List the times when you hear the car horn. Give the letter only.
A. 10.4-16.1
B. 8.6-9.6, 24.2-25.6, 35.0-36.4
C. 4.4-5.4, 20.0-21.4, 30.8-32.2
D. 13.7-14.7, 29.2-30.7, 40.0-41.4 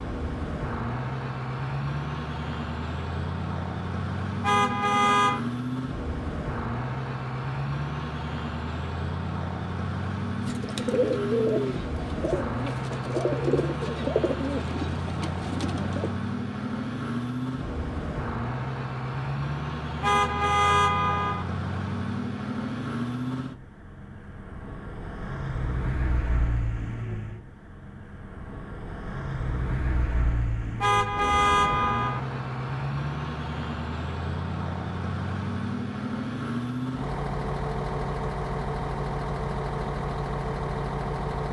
C.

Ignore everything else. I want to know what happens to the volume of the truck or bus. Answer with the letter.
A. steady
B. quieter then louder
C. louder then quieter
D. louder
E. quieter
A.